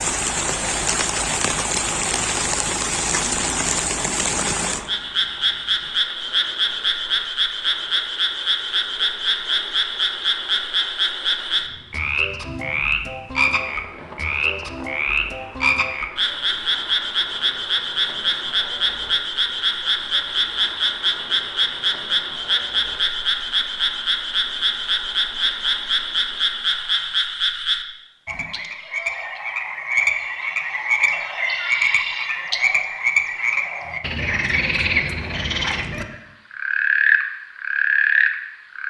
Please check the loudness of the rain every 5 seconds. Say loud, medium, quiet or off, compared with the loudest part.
loud, quiet, quiet, quiet, quiet, quiet, off, off.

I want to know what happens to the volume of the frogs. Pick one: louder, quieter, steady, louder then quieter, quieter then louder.
steady.